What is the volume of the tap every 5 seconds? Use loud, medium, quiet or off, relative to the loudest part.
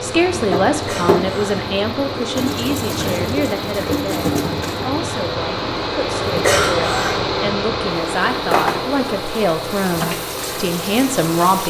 loud, loud, medium.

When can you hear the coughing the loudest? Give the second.
7 s.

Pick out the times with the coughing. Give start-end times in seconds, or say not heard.
0.8-1.6, 6.4-7.2.